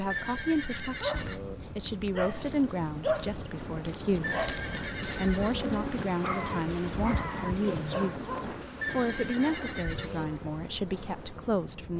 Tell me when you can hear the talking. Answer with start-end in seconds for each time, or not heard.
0.0-4.5, 5.2-11.9.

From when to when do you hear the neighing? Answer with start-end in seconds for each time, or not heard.
0.1-1.6, 4.2-5.7, 8.8-10.3.